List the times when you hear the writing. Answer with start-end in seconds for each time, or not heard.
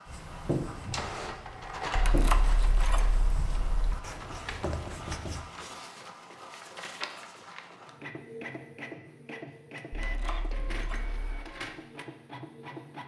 0.1-5.5.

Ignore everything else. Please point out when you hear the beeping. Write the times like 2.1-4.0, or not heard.
not heard.